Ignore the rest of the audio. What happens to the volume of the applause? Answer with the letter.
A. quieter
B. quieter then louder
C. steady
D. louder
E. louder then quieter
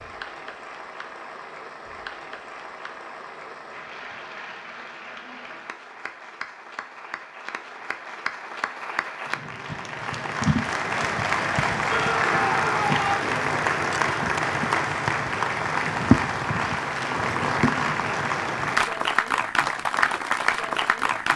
D.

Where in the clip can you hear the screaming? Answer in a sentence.
The screaming can be heard from 11.8 to 13.2 s.